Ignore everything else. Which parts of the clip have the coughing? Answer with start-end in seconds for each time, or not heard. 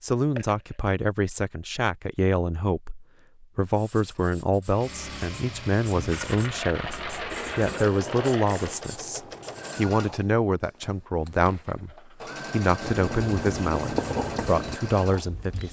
not heard.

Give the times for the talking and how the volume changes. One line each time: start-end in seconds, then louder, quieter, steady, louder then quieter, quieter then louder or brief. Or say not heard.
0.0-15.6 steady.